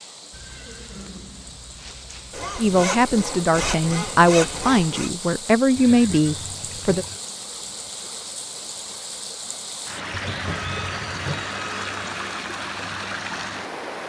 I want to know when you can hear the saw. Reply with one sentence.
You can hear the saw from 2.3 to 5.1 s and from 10.4 to 12.4 s.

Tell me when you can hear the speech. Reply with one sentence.
The speech can be heard from 2.5 to 7.0 s.